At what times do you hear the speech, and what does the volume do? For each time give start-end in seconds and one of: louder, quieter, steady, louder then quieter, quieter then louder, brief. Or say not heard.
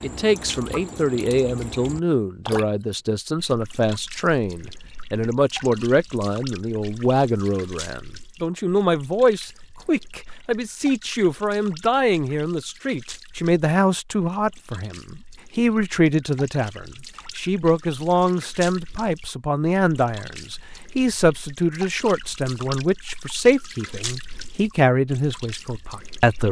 0.0-26.4 steady.